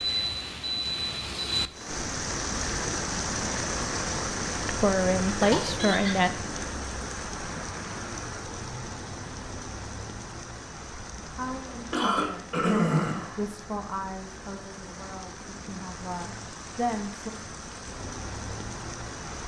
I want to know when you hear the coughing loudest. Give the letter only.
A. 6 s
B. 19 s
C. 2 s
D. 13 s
D.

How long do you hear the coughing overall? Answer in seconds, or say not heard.
2 s.